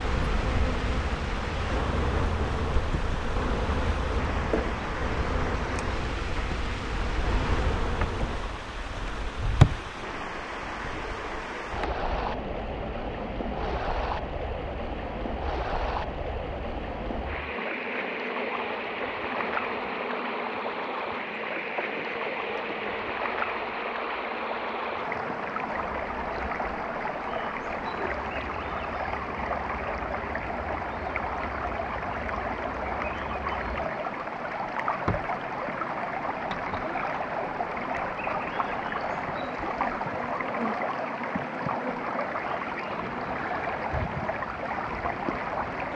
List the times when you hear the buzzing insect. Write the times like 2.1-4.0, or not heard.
0.0-45.9.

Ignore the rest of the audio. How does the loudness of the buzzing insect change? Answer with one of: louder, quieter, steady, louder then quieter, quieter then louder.
quieter.